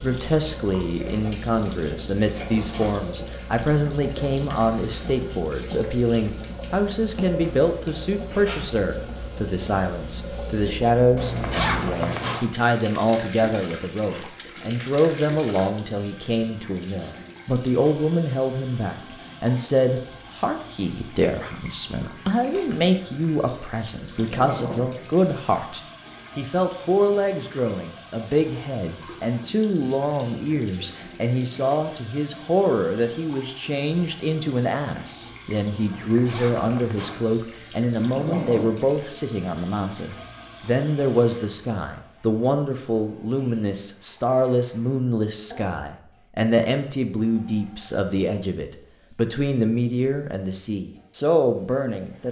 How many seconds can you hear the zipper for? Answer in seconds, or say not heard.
3 s.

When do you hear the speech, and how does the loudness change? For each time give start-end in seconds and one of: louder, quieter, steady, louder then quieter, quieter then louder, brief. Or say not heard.
0.0-52.2 steady.